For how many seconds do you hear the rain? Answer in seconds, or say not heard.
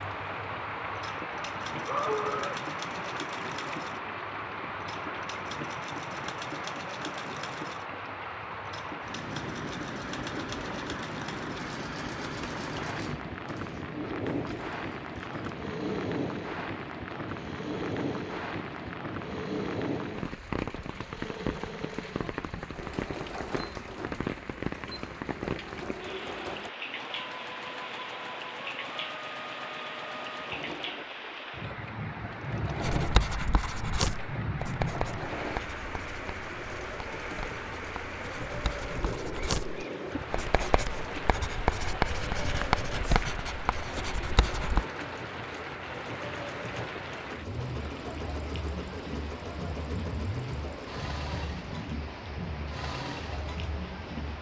54 s.